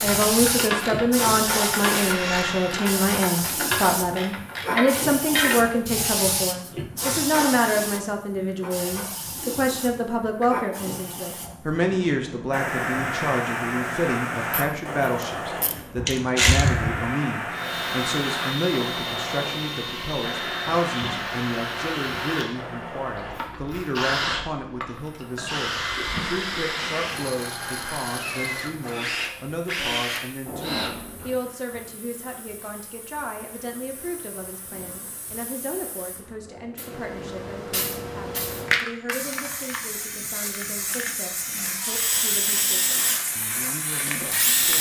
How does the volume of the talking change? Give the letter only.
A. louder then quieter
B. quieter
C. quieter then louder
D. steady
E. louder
B.